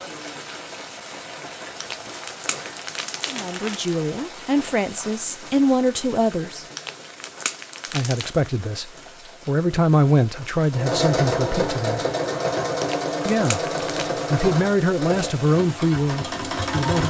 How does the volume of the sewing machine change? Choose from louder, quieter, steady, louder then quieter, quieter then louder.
quieter.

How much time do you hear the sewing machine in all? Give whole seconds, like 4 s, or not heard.
6 s.